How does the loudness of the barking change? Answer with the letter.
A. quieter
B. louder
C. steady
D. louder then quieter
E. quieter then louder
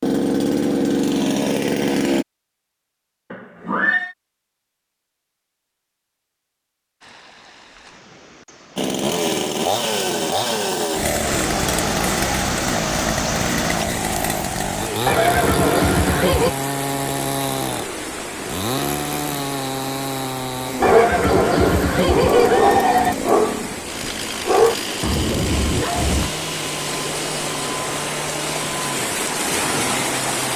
D.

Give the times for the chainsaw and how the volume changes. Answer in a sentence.
The chainsaw can be heard briefly from 0.0 to 2.2 s; and from 8.8 to 30.5 s, getting quieter.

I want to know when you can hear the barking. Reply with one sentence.
The barking can be heard from 20.8 to 26.3 s.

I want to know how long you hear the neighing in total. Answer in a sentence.
You can hear the neighing for 5 seconds altogether.